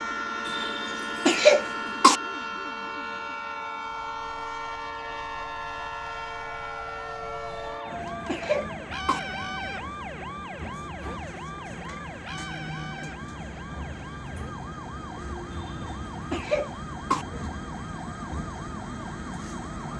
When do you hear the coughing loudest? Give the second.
1 s.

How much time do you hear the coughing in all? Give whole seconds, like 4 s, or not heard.
5 s.